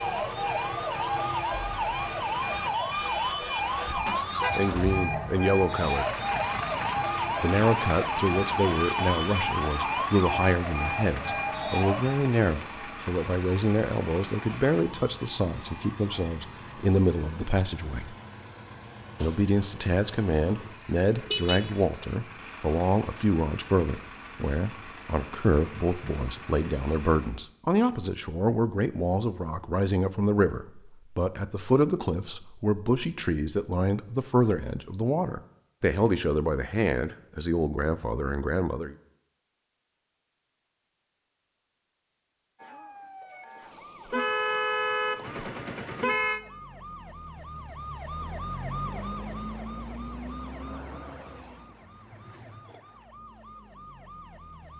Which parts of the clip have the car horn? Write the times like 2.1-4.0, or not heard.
3.9-4.5, 21.2-21.7, 44.1-46.4.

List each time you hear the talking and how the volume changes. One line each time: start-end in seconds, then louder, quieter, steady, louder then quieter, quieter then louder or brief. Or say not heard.
4.5-6.1 brief
7.4-18.1 steady
19.2-39.0 steady.